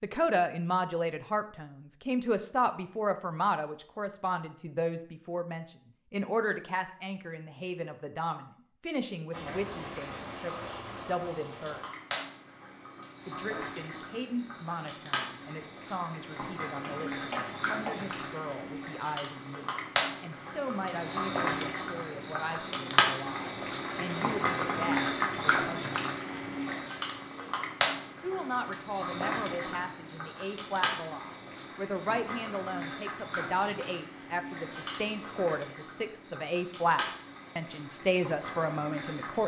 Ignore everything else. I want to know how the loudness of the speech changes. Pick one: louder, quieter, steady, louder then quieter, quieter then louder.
quieter then louder.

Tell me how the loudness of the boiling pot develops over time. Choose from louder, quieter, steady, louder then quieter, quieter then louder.
louder then quieter.